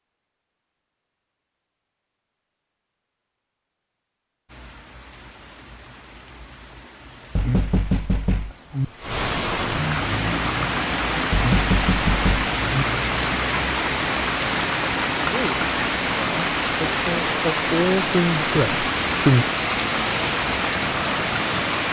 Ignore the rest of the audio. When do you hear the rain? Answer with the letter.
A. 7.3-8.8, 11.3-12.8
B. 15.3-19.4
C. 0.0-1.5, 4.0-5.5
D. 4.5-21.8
D.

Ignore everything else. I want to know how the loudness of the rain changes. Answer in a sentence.
The loudness of the rain goes up.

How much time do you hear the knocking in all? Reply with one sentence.
You can hear the knocking for 3 seconds altogether.